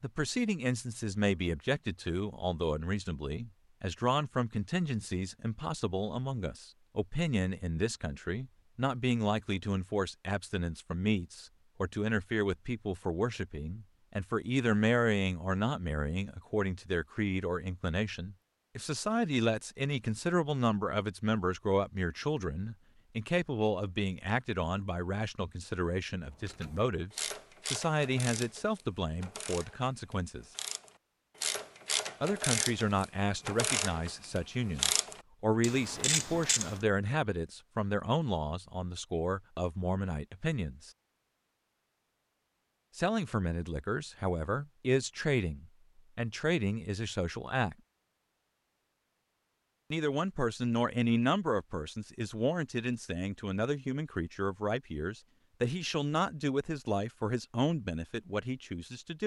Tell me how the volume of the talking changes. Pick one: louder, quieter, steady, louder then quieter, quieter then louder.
steady.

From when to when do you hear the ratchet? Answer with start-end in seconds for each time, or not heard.
26.3-36.8.